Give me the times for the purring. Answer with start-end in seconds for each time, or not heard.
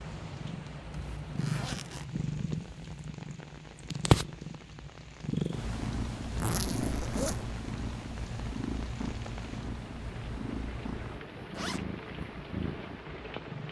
0.0-13.6.